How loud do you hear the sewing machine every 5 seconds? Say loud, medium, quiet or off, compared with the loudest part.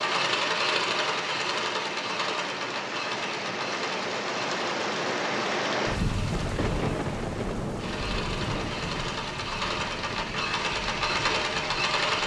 loud, medium, loud.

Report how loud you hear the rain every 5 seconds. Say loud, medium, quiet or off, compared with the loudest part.
loud, loud, medium.